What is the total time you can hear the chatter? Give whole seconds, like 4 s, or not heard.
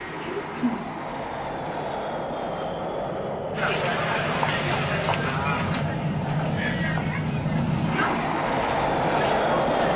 6 s.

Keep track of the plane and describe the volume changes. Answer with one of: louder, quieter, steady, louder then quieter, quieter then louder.
louder.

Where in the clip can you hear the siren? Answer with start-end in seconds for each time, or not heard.
not heard.